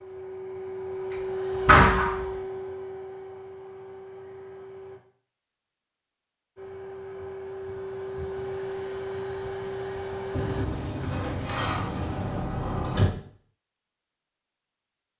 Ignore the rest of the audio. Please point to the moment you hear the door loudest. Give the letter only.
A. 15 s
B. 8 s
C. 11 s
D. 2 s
D.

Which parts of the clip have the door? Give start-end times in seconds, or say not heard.
1.6-2.2, 10.3-13.2.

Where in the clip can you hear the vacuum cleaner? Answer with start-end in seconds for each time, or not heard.
0.0-5.0, 6.5-10.7.